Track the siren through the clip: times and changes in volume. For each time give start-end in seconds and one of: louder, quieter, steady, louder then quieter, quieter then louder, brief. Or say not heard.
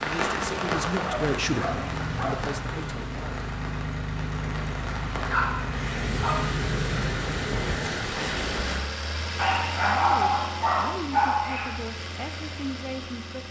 not heard.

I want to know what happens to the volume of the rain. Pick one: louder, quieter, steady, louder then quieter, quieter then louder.
quieter then louder.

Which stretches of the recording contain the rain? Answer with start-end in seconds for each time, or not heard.
0.0-8.8.